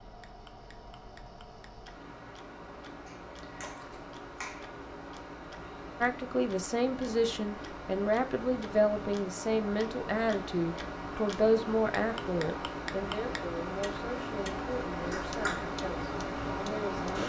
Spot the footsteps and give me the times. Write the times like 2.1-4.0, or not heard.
not heard.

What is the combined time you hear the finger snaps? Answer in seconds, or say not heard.
2 s.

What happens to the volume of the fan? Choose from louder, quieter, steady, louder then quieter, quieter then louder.
louder.